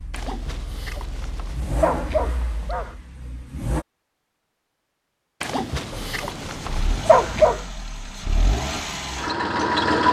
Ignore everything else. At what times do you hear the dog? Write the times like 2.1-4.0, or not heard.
0.1-3.0, 5.4-7.6.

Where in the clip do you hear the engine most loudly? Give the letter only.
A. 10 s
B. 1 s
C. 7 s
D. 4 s
A.